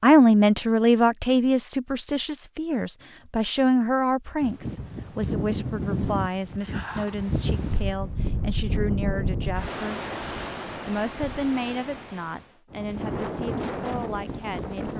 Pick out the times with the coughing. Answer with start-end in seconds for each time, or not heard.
not heard.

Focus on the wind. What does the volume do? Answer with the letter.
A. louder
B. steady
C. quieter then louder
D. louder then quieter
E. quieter
C.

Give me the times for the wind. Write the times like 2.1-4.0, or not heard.
4.4-14.9.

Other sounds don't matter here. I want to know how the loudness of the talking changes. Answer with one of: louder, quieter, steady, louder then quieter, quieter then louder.
quieter.